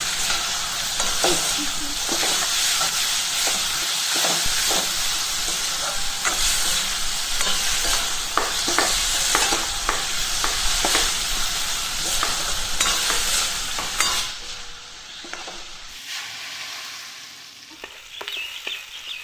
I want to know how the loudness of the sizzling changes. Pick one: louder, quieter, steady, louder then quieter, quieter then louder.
quieter.